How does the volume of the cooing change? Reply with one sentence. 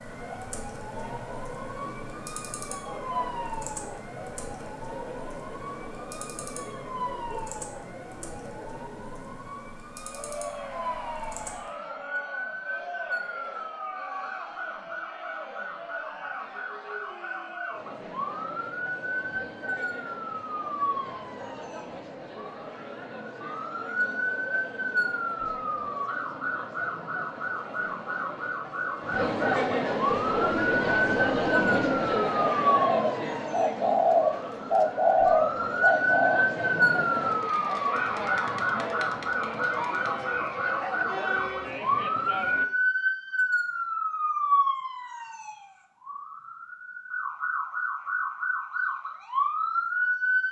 The volume of the cooing goes up.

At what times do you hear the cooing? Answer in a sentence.
The cooing can be heard from 30.1 to 36.4 s.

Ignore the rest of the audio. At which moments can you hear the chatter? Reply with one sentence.
The chatter can be heard from 0.0 to 42.6 s.